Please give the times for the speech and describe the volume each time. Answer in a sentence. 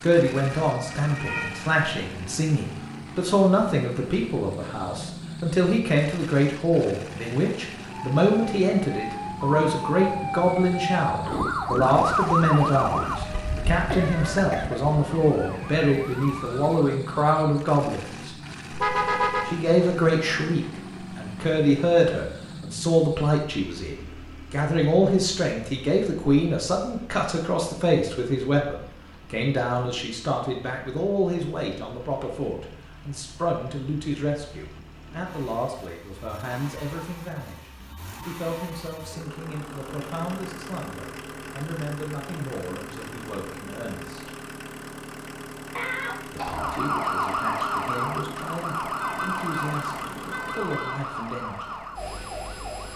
You can hear the speech from 0.0 to 18.3 s, at a steady volume; from 19.4 to 44.3 s, getting quieter; and from 46.2 to 51.9 s, at a steady volume.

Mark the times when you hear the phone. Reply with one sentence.
You can't hear the phone here.